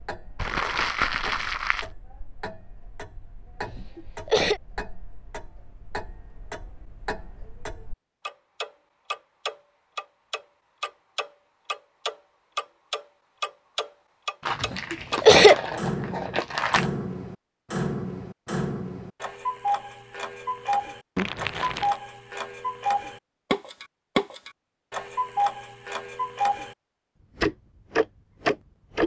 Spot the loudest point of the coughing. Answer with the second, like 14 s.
15 s.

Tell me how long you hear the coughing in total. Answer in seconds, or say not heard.
2 s.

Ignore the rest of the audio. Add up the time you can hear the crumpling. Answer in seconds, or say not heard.
5 s.